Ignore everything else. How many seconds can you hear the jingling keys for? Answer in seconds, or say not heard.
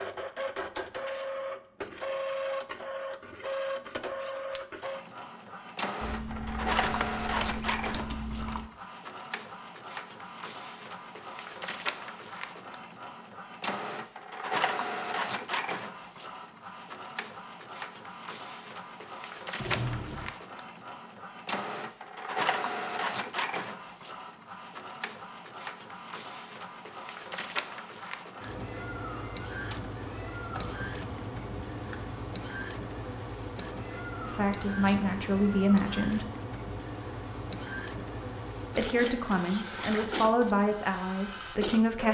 5 s.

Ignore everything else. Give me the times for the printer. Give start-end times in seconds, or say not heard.
0.0-42.0.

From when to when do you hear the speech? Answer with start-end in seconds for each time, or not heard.
34.2-36.2, 38.8-42.0.